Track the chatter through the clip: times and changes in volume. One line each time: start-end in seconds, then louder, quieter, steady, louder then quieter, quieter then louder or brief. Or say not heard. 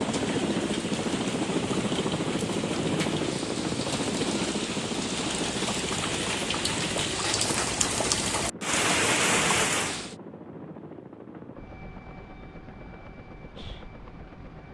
not heard.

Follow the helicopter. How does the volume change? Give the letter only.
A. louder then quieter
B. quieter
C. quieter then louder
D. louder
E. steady
B.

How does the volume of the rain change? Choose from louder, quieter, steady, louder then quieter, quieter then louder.
louder.